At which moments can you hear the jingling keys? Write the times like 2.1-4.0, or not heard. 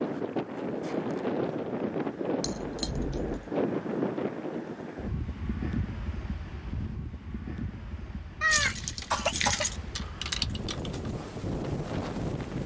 2.4-3.5, 8.4-11.1.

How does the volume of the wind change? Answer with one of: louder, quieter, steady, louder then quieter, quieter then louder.
quieter then louder.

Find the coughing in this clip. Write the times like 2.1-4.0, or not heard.
8.4-9.7.